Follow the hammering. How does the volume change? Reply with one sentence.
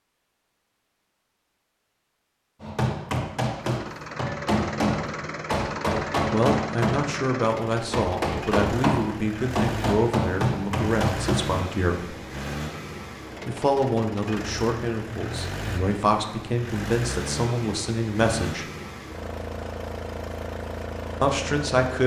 The loudness of the hammering stays about the same.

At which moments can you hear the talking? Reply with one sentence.
You can hear the talking from 6.3 to 12.2 s, from 13.4 to 18.6 s and from 21.2 to 22.0 s.